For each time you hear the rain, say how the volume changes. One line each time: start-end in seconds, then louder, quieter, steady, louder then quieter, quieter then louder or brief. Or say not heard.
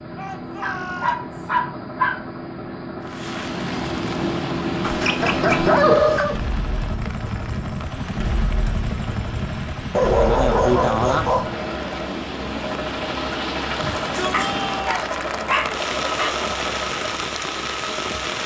3.0-18.4 quieter then louder.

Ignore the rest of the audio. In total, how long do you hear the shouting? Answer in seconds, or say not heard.
3 s.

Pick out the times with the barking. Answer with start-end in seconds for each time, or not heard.
0.6-2.2, 4.8-6.3, 9.9-11.5, 14.3-16.3.